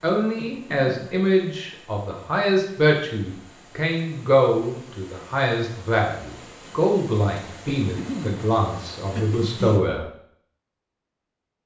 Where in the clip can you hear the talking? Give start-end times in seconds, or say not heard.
0.0-10.0.